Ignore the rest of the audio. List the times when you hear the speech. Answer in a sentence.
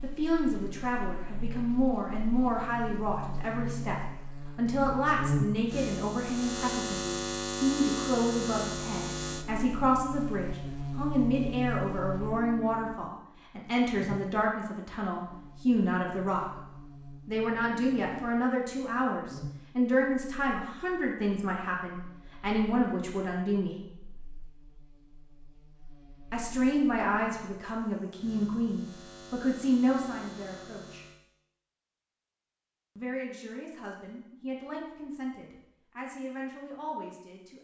The speech can be heard from 0.0 to 16.4 s, from 17.2 to 23.8 s, from 26.3 to 31.1 s and from 33.0 to 37.5 s.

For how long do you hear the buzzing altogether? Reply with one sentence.
You can hear the buzzing for 31 seconds altogether.